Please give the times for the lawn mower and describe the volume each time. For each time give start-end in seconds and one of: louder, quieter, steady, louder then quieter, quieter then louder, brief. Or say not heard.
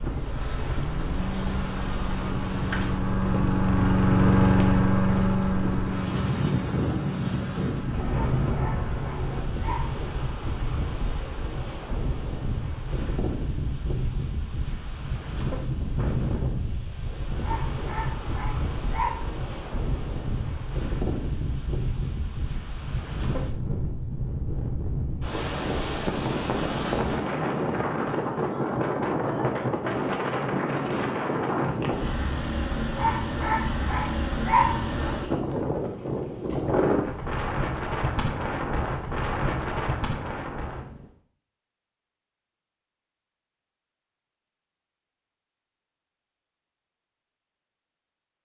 0.0-9.5 louder then quieter.